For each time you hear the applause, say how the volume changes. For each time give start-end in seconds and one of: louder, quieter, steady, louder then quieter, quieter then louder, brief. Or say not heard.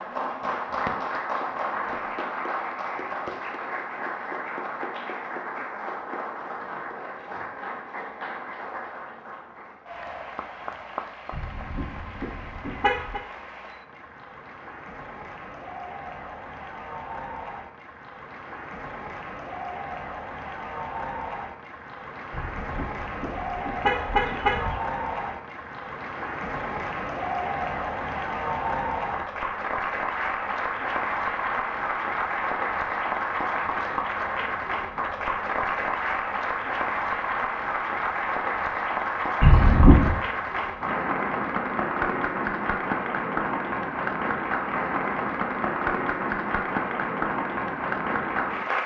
0.0-48.8 quieter then louder.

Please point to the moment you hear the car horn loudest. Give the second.
40 s.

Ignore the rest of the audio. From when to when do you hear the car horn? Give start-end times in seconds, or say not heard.
11.3-13.2, 22.3-24.8, 39.4-40.2.